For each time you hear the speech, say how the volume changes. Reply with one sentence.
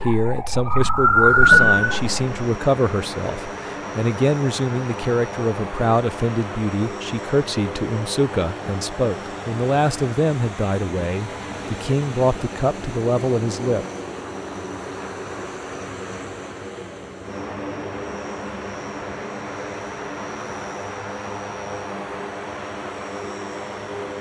You can hear the speech from 0.0 to 13.8 s, at a steady volume.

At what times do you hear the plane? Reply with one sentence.
You can hear the plane from 1.4 to 24.1 s.